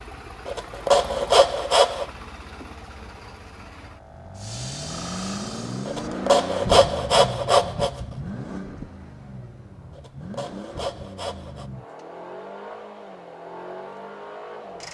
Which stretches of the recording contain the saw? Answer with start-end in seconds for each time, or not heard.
0.5-2.0, 5.8-8.0, 9.9-11.7.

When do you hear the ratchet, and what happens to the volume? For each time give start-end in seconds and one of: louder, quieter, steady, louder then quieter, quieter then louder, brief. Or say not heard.
not heard.